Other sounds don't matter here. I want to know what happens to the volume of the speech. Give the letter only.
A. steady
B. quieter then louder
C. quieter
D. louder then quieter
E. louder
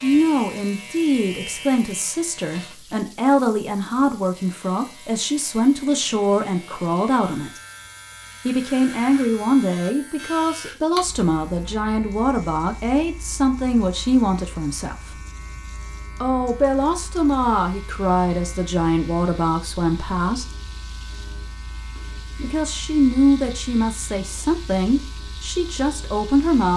A.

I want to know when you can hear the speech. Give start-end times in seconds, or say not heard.
0.0-7.6, 8.4-15.2, 16.2-20.4, 22.4-26.7.